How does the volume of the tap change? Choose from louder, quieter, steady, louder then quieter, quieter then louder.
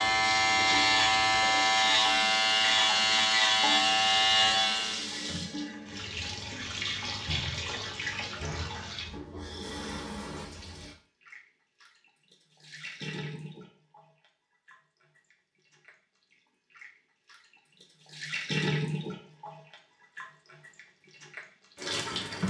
quieter then louder.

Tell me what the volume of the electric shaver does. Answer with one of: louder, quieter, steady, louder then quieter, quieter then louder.
steady.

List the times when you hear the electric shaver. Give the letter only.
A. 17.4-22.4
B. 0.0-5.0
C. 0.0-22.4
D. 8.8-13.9
B.